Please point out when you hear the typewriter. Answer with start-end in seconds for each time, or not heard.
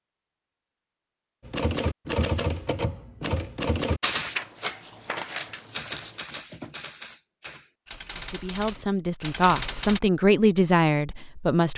1.4-10.0.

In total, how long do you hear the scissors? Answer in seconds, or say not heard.
2 s.